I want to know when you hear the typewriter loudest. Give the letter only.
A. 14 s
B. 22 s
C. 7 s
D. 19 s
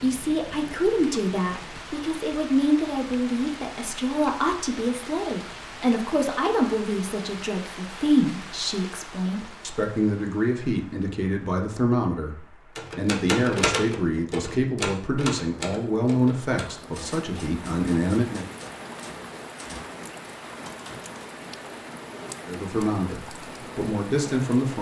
A.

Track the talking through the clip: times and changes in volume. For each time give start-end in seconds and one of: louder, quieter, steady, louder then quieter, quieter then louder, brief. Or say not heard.
0.0-18.4 steady
22.4-24.7 brief.